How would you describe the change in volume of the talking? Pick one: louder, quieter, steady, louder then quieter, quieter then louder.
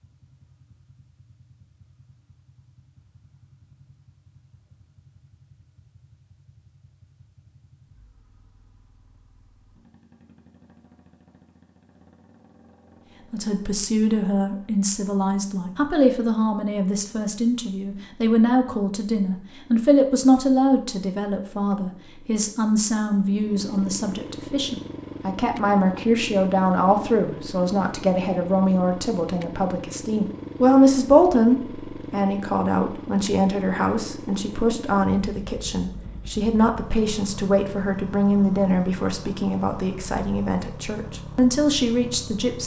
steady.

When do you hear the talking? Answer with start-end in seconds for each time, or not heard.
13.3-42.6.